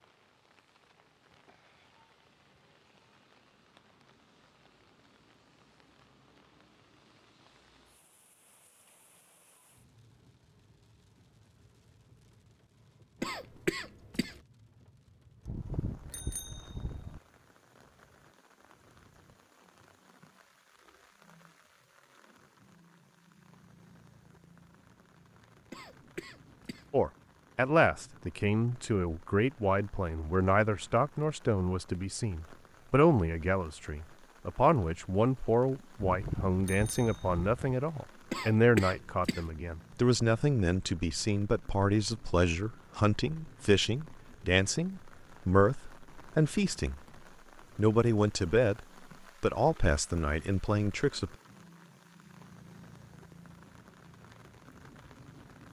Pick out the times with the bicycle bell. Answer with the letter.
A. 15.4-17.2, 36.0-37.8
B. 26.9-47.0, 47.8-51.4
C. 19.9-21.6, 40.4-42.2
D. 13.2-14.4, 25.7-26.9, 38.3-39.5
A.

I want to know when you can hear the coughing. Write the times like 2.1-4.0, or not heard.
13.2-14.4, 25.7-26.9, 38.3-39.5.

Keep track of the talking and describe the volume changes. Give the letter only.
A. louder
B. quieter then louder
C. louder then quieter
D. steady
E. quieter
D.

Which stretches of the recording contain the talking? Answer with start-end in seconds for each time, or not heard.
26.9-47.0, 47.8-51.4.